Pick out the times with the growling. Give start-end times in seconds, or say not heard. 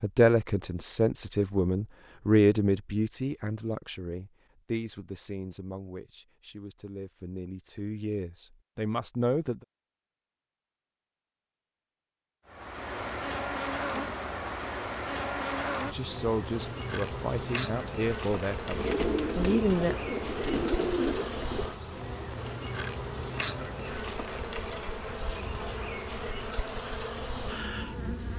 not heard.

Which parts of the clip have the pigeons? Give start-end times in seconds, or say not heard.
18.8-21.8.